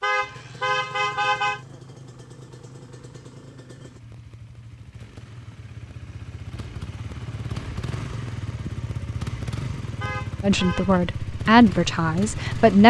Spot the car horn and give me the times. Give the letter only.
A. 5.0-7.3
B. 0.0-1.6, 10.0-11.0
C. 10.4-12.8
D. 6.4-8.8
B.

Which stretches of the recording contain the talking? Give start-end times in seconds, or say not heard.
10.4-12.8.